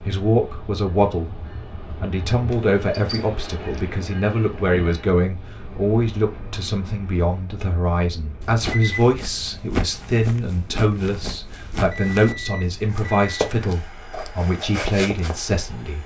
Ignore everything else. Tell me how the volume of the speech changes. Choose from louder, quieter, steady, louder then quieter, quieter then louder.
steady.